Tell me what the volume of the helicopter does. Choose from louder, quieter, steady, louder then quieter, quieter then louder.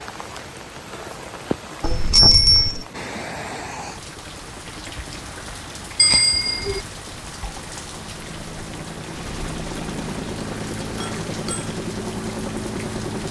louder.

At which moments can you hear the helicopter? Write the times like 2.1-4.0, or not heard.
0.0-13.2.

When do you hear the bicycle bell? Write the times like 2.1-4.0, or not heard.
1.8-2.9, 6.0-6.8, 11.0-11.7.